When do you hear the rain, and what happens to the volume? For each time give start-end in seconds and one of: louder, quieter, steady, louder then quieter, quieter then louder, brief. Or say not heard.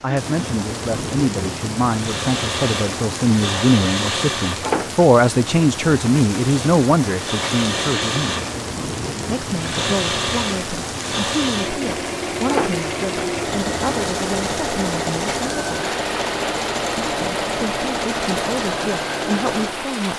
0.0-20.1 steady.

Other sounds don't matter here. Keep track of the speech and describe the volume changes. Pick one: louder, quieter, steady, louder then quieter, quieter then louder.
louder then quieter.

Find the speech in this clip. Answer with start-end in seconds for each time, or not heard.
0.0-8.3, 9.2-15.9, 17.1-20.1.